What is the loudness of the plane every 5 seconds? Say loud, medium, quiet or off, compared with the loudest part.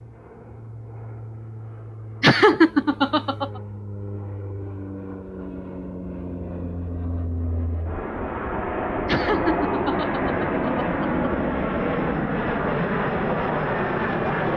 quiet, medium, loud.